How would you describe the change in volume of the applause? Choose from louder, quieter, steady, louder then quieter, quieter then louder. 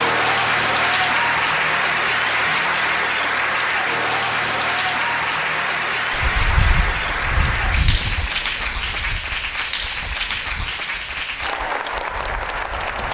quieter.